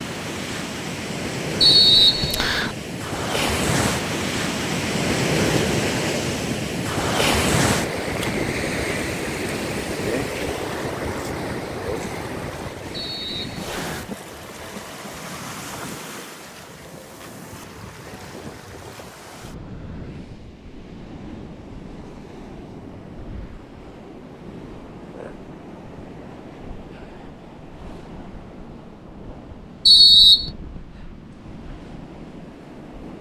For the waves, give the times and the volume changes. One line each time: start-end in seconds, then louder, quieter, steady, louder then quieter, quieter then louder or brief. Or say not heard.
0.0-33.1 quieter.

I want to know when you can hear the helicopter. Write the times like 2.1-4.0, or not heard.
not heard.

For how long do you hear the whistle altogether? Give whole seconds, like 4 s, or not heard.
3 s.